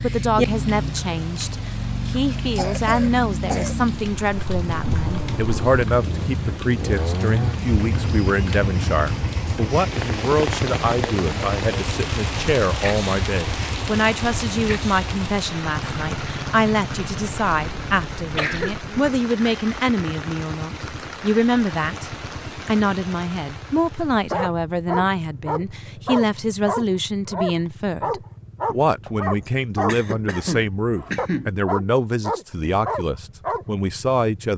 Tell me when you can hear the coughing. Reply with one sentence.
The coughing can be heard from 2.5 to 3.8 s, from 18.4 to 19.1 s and from 29.1 to 31.6 s.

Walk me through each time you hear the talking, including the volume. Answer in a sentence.
The talking can be heard from 0.0 to 34.5 s, at a steady volume.